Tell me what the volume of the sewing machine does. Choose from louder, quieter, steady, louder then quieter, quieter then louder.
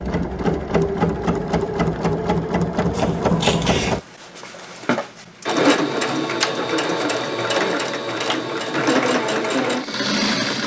steady.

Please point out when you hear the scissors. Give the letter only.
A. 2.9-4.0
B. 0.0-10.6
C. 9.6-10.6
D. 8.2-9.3
A.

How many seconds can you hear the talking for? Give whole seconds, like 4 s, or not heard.
not heard.